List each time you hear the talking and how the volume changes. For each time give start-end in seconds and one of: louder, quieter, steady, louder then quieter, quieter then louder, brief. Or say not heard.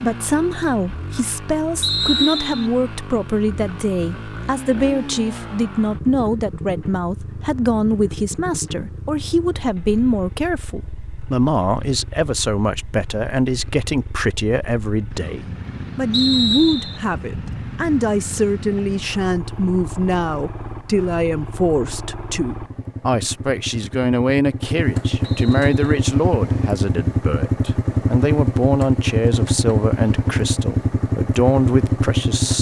0.0-32.5 steady.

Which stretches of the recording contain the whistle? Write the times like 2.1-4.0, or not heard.
1.8-2.7, 16.1-17.0, 25.2-25.9.